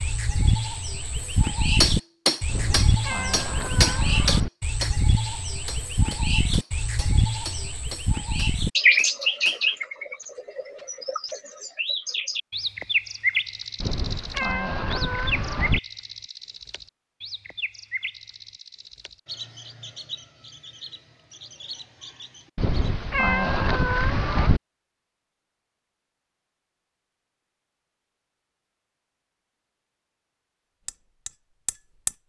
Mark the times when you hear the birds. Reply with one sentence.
The birds can be heard from 0.0 to 23.1 s.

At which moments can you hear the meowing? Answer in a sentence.
The meowing can be heard from 2.5 to 4.5 s, from 13.8 to 15.8 s and from 22.6 to 24.6 s.